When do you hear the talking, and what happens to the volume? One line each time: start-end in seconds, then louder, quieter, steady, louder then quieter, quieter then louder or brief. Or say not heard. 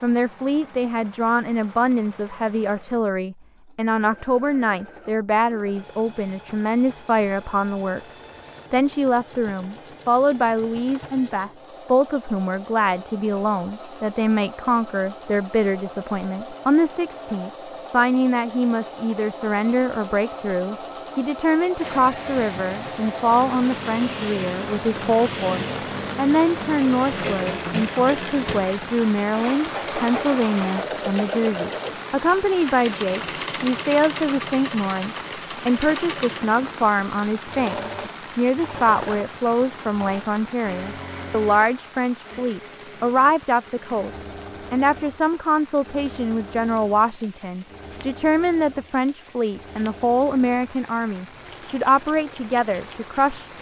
0.0-53.5 steady.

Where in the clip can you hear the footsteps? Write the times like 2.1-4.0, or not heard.
not heard.